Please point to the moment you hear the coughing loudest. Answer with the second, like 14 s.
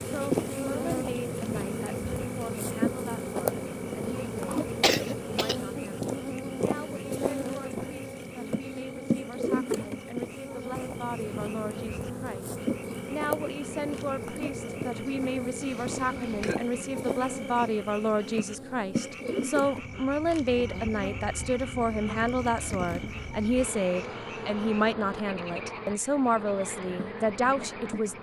5 s.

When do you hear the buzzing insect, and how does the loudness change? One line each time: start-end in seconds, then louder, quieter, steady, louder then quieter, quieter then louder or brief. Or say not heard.
0.0-28.1 quieter.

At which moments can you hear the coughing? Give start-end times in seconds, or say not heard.
4.0-5.6, 15.6-16.6.